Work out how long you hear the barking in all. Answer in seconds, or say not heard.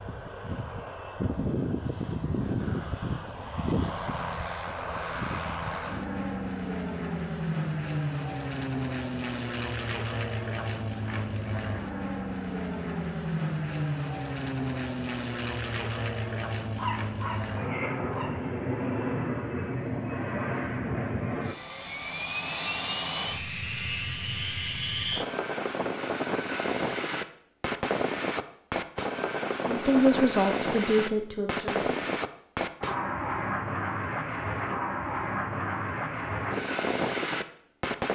2 s.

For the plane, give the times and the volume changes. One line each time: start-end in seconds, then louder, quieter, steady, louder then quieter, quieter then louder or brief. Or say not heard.
0.0-38.0 steady.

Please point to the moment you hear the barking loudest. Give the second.
17 s.